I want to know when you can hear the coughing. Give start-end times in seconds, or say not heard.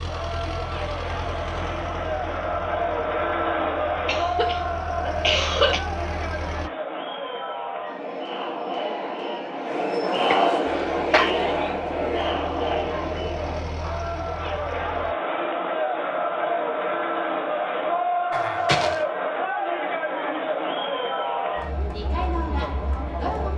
4.0-5.8, 10.3-11.3, 18.3-19.0.